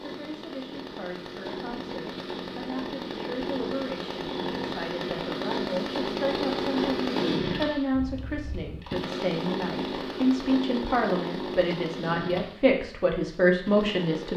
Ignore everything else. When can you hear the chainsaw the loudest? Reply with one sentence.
The loudest moment of the chainsaw is at 7 seconds.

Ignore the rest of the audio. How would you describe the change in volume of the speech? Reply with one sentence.
The loudness of the speech goes up.